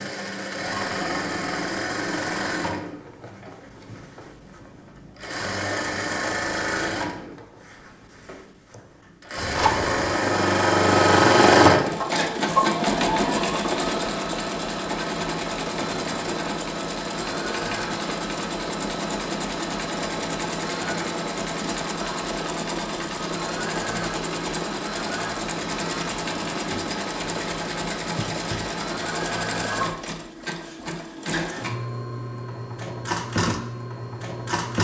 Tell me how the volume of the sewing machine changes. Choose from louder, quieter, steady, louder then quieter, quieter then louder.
louder then quieter.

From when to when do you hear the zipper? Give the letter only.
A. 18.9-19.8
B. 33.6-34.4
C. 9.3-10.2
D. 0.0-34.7
C.